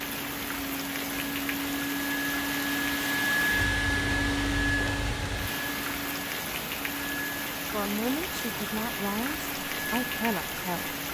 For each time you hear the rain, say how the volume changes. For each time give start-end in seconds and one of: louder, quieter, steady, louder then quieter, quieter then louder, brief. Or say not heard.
0.0-11.0 steady.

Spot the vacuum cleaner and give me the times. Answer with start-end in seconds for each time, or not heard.
0.0-11.0.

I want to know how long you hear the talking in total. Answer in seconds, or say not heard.
3 s.